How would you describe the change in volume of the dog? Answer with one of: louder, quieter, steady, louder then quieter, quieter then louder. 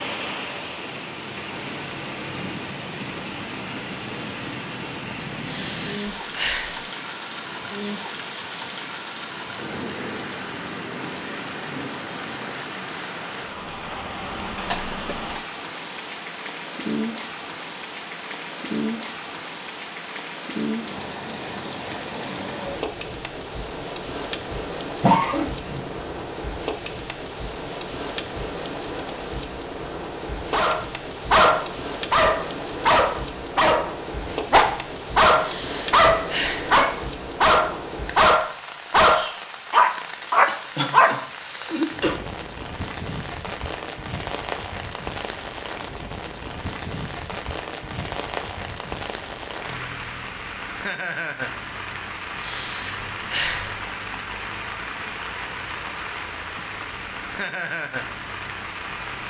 steady.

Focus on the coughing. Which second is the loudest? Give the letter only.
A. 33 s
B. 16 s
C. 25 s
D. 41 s
C.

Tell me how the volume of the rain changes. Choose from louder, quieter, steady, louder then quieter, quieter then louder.
steady.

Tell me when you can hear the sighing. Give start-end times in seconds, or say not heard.
5.4-6.8, 35.4-36.8, 52.4-53.8.